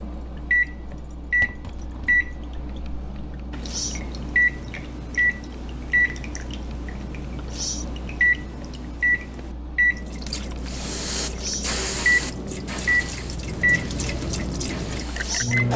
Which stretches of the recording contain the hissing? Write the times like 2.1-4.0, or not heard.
10.6-15.7.